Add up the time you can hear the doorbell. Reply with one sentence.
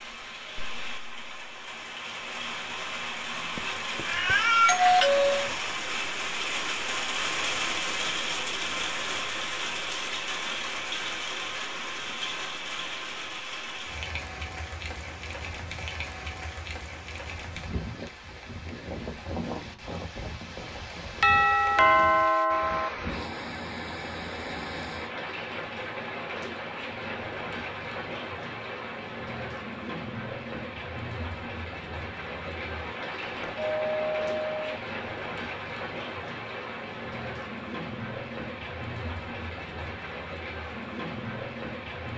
You can hear the doorbell for 4 seconds altogether.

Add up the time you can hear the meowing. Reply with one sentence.
The meowing can be heard for 2 seconds in total.